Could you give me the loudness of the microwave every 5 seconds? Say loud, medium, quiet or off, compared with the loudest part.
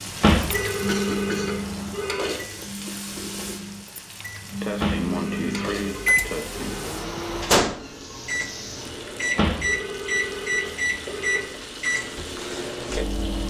medium, loud, loud.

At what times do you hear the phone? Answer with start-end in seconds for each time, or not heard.
0.2-2.3, 4.8-6.9, 9.3-11.4.